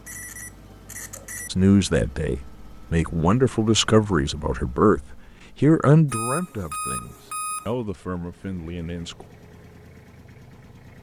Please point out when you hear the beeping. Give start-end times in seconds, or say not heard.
0.1-1.5, 6.0-7.7.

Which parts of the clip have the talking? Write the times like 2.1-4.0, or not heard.
1.5-9.2.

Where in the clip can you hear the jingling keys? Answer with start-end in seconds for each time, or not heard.
not heard.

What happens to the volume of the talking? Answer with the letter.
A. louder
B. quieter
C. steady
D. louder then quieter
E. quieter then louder
D.